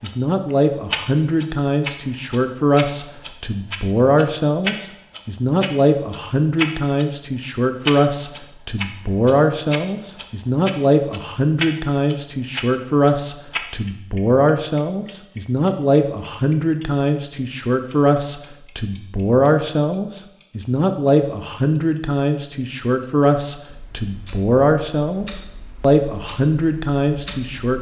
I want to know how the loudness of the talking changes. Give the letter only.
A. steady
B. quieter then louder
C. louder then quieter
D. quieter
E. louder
A.